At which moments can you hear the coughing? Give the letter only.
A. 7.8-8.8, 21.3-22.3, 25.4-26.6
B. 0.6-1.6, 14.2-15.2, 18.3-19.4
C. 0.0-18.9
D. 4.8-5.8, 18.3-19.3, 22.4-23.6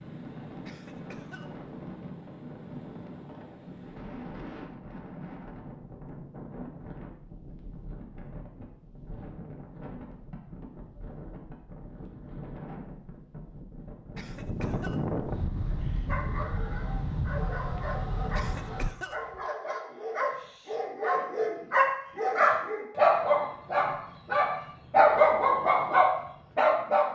B.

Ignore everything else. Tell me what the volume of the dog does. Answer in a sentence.
The loudness of the dog goes up.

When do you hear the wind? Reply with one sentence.
You can hear the wind from 0.0 to 18.9 s.